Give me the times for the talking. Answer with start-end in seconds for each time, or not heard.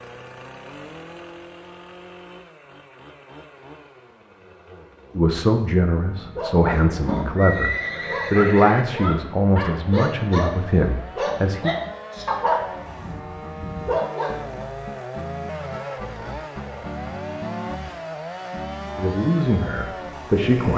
5.2-11.7, 18.9-20.7.